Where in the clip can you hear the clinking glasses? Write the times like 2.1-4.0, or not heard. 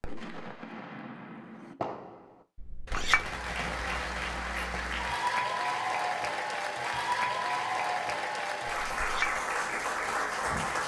2.5-3.3, 8.9-9.4.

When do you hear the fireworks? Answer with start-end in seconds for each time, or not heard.
0.0-4.8.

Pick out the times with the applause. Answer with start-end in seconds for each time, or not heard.
3.1-10.8.